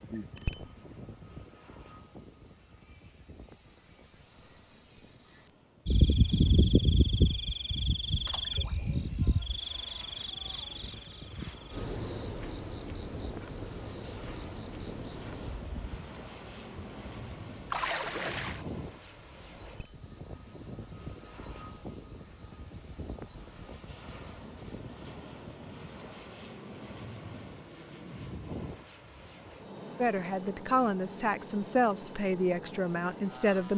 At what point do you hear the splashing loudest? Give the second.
18 s.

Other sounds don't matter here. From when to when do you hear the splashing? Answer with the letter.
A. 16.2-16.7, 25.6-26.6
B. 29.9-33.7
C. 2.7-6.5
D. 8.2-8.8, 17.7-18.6
D.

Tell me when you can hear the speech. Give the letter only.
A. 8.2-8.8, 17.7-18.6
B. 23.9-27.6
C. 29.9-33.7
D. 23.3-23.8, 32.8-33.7
C.